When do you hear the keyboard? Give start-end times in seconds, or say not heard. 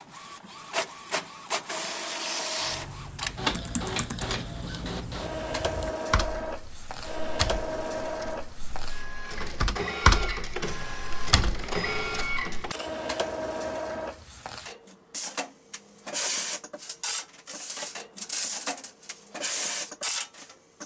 2.6-12.6.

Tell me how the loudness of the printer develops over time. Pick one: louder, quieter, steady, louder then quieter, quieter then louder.
steady.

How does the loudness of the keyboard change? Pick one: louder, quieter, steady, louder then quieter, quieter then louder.
louder then quieter.